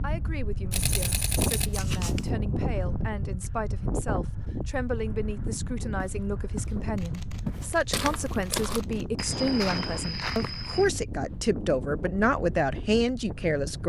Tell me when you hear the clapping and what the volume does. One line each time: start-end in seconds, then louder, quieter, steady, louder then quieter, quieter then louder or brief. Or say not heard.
not heard.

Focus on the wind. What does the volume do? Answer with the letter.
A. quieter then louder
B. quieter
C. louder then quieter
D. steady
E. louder
B.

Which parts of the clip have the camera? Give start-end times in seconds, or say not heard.
0.7-2.3, 7.0-9.1.